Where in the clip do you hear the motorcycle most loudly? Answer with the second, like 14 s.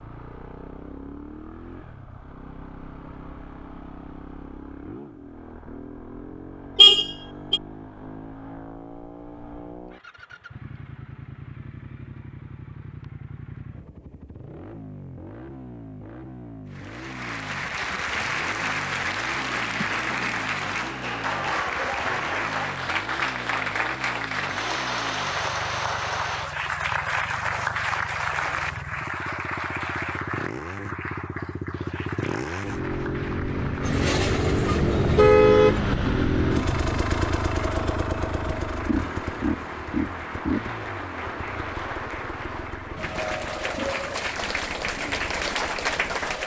36 s.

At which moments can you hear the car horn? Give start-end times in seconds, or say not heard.
6.8-7.6, 33.8-35.8.